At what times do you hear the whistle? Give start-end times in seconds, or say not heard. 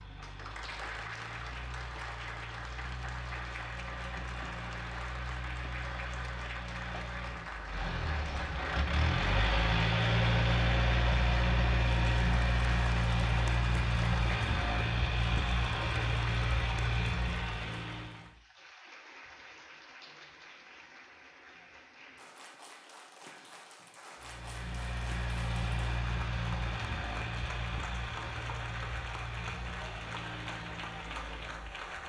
not heard.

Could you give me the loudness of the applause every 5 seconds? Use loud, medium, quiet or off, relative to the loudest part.
loud, loud, loud, medium, medium, loud, loud.